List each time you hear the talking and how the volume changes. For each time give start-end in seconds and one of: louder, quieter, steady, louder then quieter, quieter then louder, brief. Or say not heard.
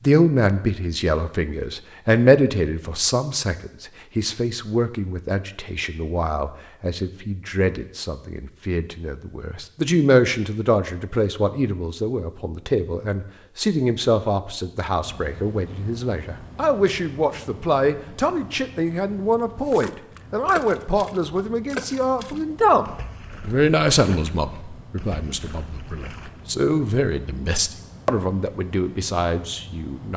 0.0-30.1 steady.